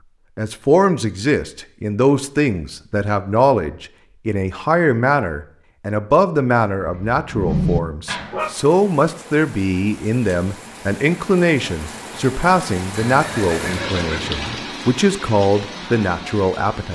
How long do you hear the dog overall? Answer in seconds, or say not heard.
2 s.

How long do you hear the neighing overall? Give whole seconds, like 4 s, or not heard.
2 s.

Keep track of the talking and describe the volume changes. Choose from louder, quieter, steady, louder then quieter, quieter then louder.
steady.